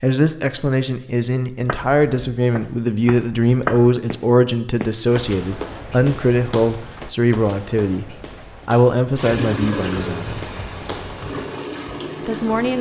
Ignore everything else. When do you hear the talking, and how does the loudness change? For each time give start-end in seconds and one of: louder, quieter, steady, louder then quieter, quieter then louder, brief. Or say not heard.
0.0-10.4 steady
12.2-12.7 brief.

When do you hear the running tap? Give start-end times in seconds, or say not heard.
9.2-12.7.